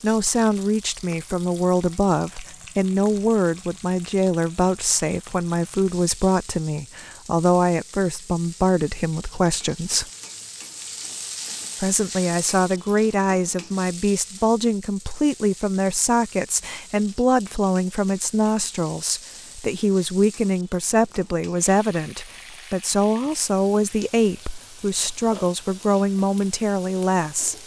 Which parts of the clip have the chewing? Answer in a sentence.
You can't hear the chewing here.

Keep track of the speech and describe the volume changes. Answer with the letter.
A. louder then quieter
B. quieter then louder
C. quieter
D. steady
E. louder
D.